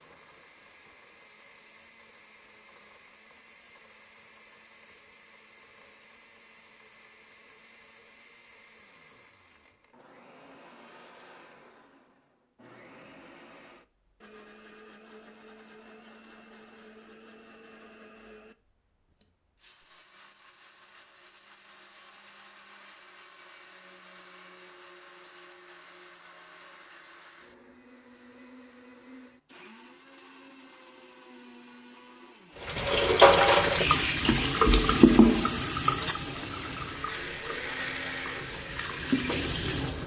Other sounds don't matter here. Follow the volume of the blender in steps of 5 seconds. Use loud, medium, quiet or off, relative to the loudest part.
quiet, quiet, quiet, quiet, quiet, quiet, quiet, loud.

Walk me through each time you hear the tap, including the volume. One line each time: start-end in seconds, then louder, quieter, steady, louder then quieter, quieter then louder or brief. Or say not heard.
32.6-40.0 quieter then louder.